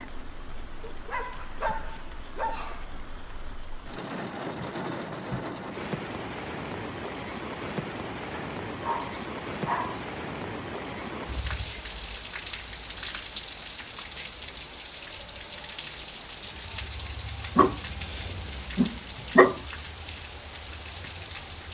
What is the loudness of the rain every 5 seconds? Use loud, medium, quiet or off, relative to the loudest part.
medium, loud, loud, medium, medium.